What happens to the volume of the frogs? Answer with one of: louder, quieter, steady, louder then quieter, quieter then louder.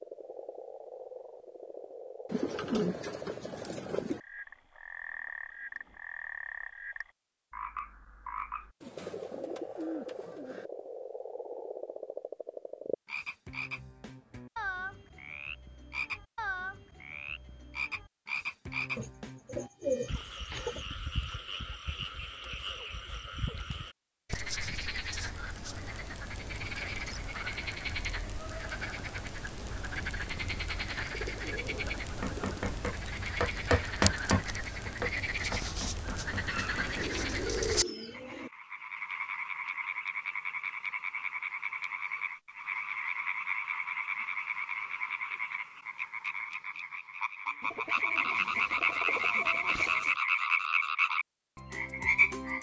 louder.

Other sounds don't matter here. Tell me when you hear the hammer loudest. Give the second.
34 s.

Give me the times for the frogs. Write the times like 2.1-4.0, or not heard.
0.0-52.5.